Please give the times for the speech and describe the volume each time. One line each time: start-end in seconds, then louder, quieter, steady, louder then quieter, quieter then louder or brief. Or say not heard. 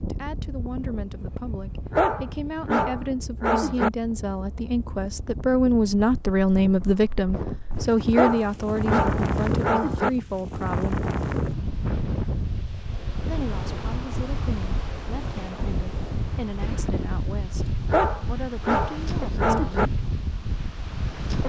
0.1-11.1 louder then quieter
13.2-19.8 steady.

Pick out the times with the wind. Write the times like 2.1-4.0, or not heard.
0.0-21.4.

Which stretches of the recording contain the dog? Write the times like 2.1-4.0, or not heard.
1.9-3.9, 8.1-10.1, 17.9-19.9.